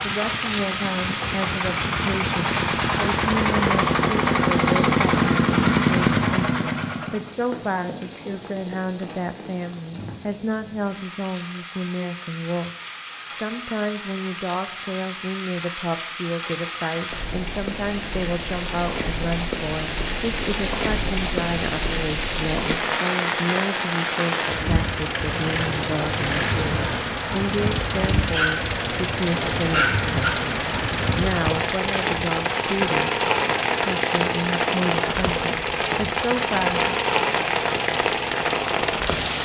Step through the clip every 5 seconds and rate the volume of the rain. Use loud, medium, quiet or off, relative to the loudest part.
medium, quiet, quiet, medium, loud, loud, loud, loud.